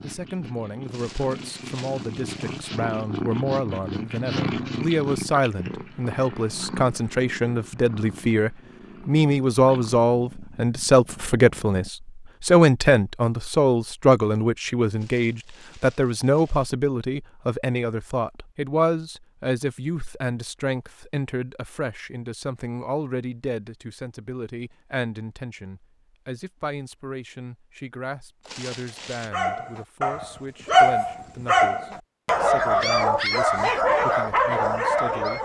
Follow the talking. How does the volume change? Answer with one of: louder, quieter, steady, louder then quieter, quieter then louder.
louder then quieter.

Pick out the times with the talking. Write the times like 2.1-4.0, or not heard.
0.0-35.3.